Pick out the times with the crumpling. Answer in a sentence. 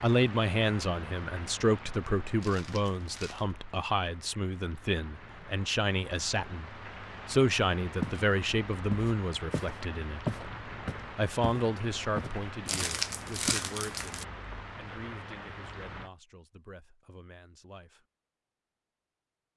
You can hear the crumpling from 2.4 to 3.5 s and from 12.7 to 14.2 s.